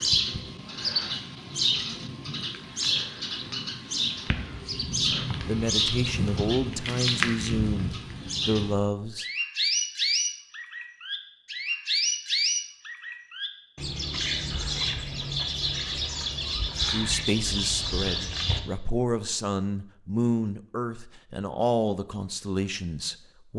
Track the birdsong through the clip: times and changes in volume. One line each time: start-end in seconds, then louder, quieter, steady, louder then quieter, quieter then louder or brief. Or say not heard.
0.0-18.6 steady.